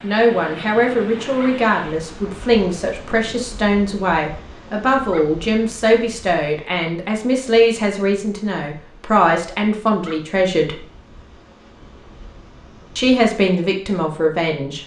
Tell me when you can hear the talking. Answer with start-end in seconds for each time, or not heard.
0.0-10.8, 12.9-14.8.